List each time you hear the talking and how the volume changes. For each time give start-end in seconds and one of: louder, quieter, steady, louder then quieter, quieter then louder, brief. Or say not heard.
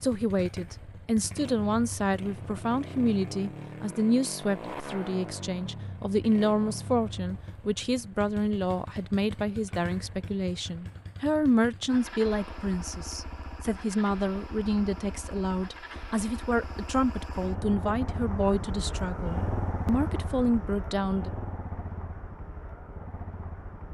0.0-21.3 steady.